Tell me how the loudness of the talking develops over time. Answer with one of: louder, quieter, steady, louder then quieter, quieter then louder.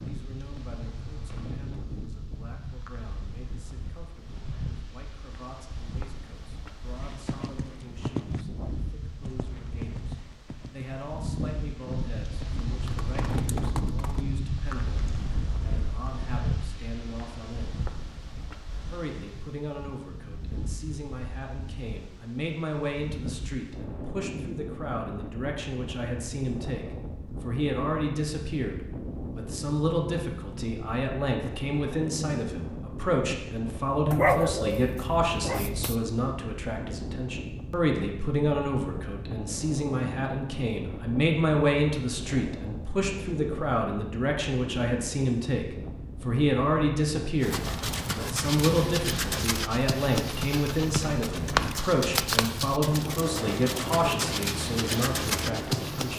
louder.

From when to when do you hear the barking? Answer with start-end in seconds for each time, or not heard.
34.1-36.0.